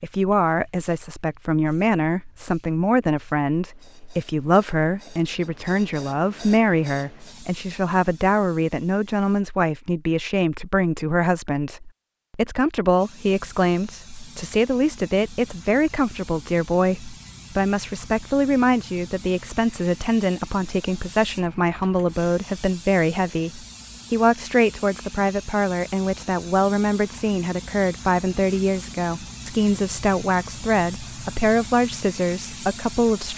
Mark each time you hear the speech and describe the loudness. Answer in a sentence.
You can hear the speech from 0.0 to 33.3 s, at a steady volume.